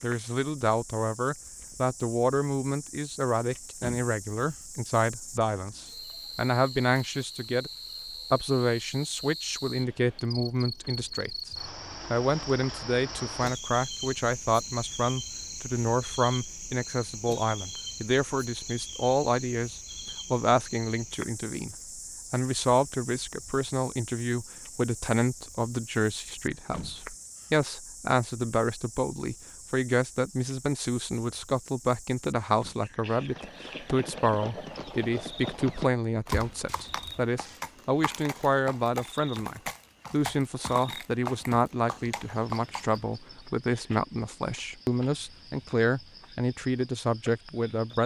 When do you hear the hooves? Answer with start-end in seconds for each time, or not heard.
33.0-43.0.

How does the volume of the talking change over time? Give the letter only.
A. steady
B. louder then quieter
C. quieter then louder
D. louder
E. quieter
A.